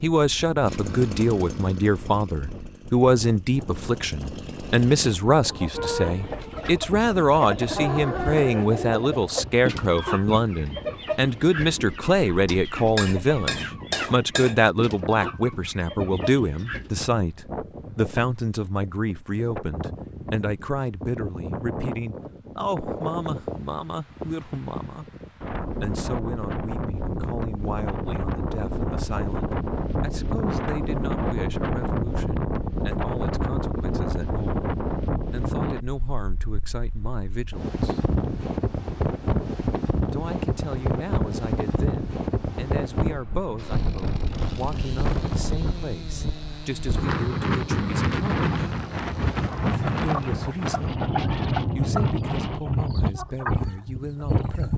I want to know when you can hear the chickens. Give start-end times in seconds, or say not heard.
5.3-17.0, 49.6-54.7.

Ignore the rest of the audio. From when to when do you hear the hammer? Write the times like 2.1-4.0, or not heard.
12.9-14.6.